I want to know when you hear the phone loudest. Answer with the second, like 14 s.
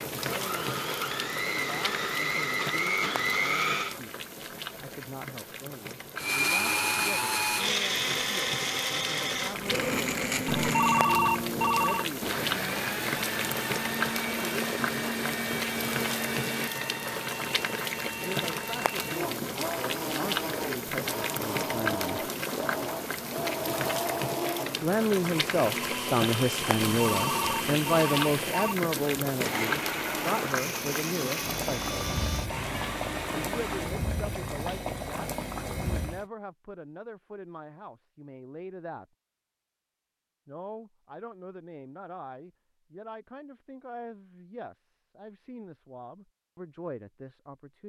11 s.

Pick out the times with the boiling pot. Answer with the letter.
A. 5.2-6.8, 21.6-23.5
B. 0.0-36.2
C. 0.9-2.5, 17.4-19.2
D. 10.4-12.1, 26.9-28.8
B.